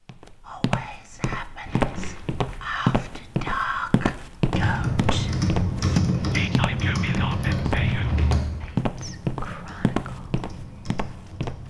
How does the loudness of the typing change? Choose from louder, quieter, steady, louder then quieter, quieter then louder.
quieter.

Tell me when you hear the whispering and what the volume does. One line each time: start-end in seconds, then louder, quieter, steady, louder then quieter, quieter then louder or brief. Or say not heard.
0.4-10.3 louder then quieter.